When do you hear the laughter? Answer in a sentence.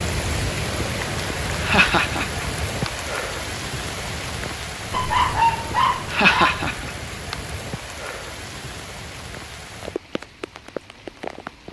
You can hear the laughter from 1.6 to 2.9 s and from 6.1 to 7.3 s.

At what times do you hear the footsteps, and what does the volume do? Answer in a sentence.
The footsteps can't be heard in this clip.